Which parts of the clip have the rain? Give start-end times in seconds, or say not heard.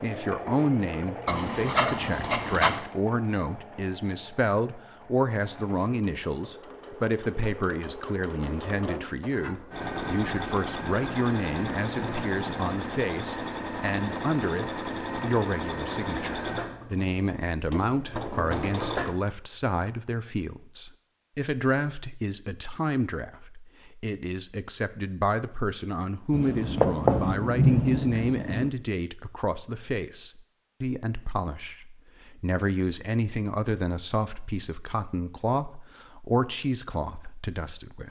not heard.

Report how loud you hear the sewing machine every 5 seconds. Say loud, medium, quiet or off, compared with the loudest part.
medium, medium, loud, loud, off, off, off, off.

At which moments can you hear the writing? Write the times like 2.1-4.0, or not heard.
1.2-2.8, 26.3-28.7.